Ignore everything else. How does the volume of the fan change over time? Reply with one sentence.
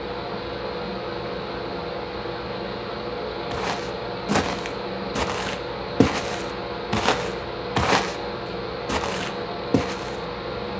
The loudness of the fan stays about the same.